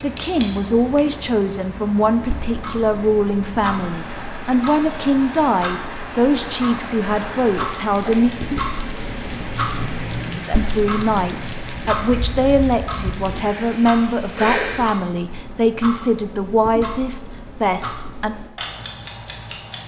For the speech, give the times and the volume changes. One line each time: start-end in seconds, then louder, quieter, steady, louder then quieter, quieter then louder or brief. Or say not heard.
0.0-8.3 steady
10.3-18.4 steady.